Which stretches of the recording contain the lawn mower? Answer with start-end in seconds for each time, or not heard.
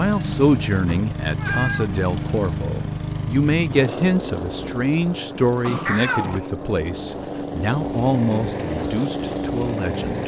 0.0-10.2.